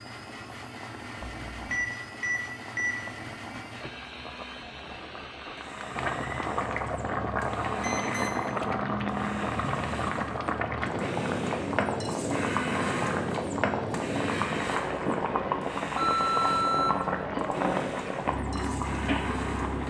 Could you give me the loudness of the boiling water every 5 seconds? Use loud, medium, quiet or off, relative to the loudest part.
quiet, loud, loud, loud.